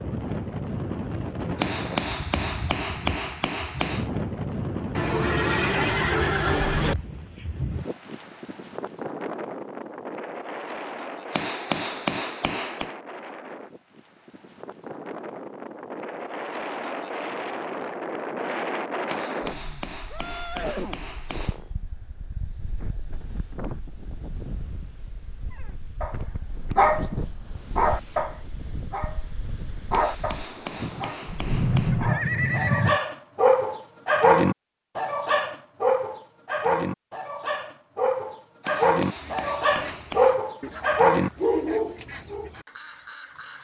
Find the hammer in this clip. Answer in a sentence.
You can hear the hammer from 1.6 to 4.1 s, from 11.3 to 12.9 s, from 19.1 to 21.6 s, from 29.9 to 31.9 s and from 38.6 to 40.4 s.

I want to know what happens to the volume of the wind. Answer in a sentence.
The volume of the wind goes down.